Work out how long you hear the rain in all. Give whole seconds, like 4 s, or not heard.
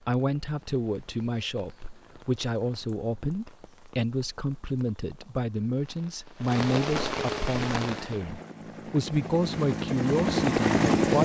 8 s.